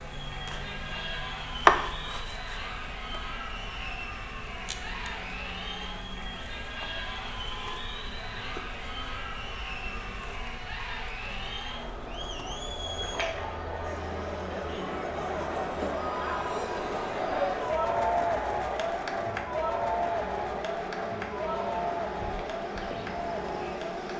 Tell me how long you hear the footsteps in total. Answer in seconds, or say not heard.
not heard.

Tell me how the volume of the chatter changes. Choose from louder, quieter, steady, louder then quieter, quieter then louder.
louder.